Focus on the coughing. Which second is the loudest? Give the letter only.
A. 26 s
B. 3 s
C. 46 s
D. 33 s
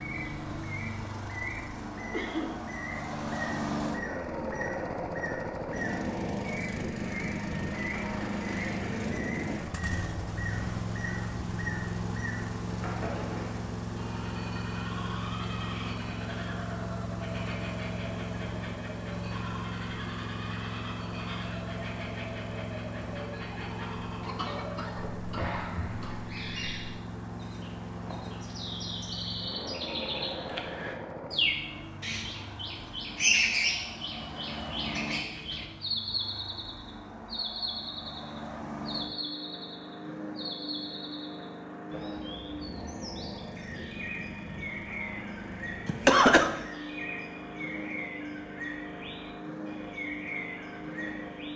C.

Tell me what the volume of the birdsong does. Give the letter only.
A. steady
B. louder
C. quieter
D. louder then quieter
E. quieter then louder
D.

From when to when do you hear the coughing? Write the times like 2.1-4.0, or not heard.
2.1-2.6, 24.2-26.2, 45.9-46.5.